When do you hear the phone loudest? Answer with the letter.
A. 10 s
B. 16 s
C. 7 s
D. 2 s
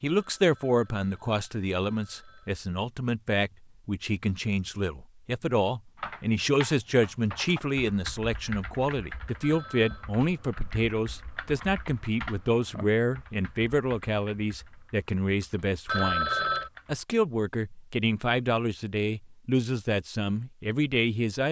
B.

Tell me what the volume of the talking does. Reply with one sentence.
The volume of the talking stays about the same.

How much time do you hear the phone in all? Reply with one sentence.
The phone can be heard for 4 seconds in total.